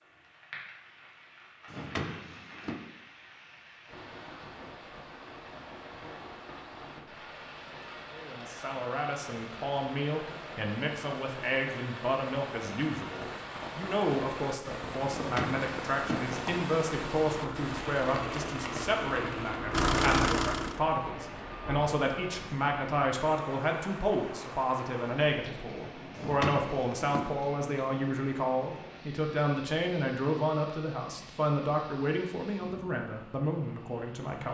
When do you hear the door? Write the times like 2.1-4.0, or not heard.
1.6-2.8, 15.1-16.7, 26.1-27.3.